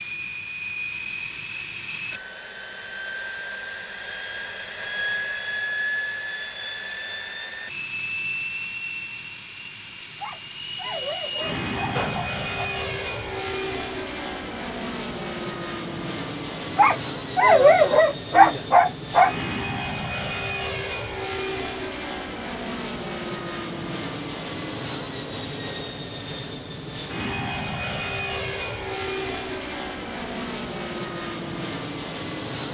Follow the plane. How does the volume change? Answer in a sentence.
The loudness of the plane stays about the same.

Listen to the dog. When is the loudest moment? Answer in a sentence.
The volume of the dog peaks at 18 seconds.